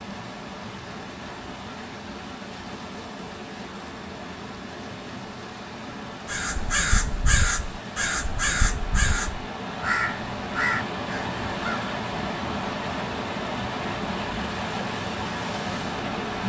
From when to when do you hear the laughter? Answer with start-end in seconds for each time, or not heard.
not heard.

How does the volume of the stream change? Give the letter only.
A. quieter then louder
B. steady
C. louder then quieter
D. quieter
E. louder
E.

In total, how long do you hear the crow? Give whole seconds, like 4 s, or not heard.
6 s.